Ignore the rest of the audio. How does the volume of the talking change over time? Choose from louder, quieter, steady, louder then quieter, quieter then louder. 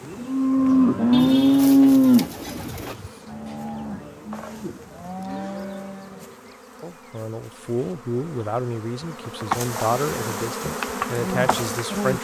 steady.